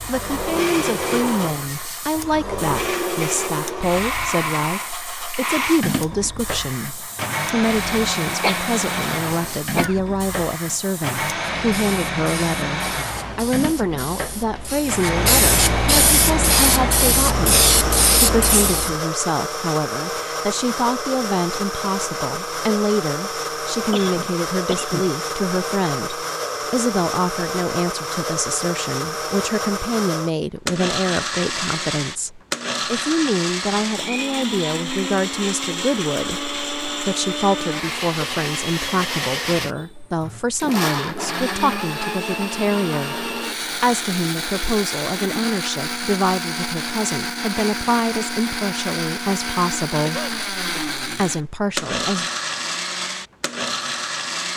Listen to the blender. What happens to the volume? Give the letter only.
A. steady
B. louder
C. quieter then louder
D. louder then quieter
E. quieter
A.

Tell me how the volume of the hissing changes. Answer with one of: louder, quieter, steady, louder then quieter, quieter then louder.
louder.